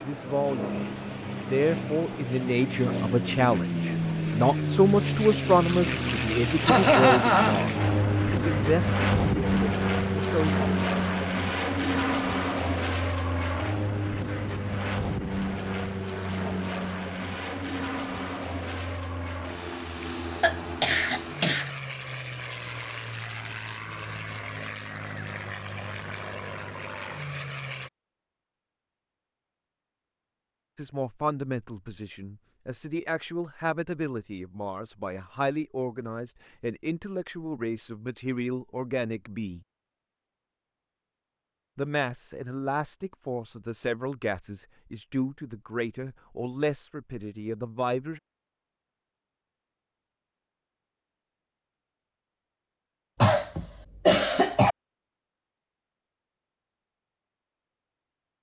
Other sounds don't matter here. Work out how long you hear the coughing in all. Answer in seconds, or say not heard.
4 s.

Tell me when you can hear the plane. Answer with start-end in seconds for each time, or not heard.
0.0-27.9.